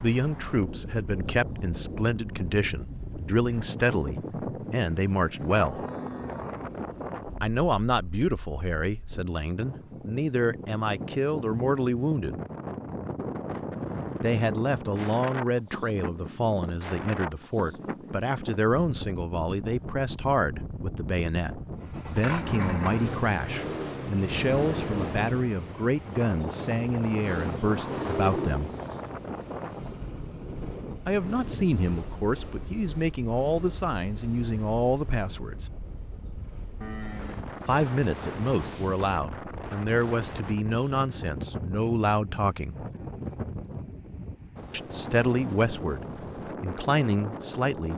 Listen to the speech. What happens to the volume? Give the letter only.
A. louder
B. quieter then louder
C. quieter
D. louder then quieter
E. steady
E.